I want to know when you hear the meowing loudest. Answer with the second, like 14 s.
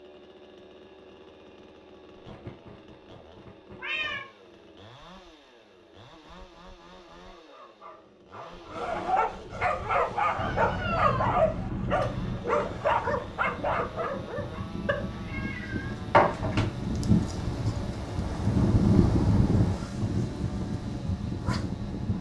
16 s.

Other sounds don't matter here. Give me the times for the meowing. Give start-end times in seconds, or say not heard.
2.2-4.2, 10.3-12.4, 14.8-16.6.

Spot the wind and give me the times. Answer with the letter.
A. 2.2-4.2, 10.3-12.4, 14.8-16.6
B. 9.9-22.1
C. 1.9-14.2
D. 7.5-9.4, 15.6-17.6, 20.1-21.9
B.